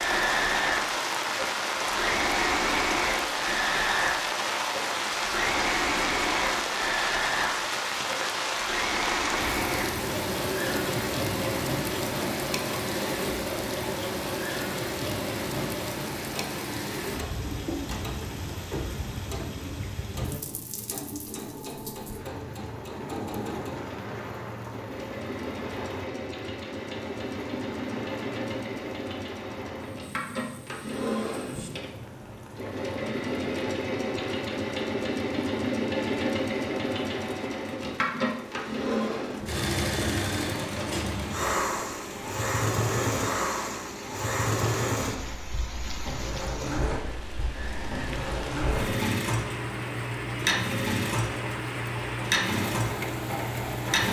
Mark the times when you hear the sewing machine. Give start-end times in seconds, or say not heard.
0.0-54.0.